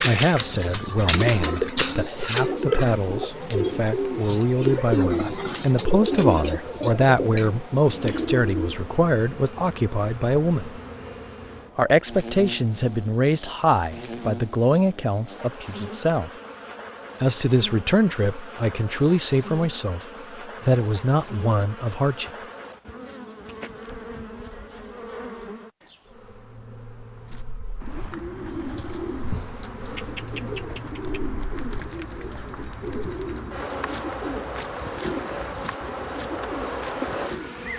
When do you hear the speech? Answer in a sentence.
You can hear the speech from 0.0 to 10.8 s, from 11.8 to 16.3 s and from 17.2 to 22.3 s.